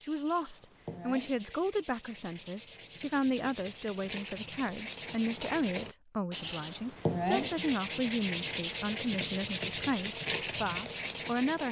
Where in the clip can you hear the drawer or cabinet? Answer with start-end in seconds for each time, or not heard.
not heard.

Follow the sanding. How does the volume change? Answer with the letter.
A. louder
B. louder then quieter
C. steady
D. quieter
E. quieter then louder
A.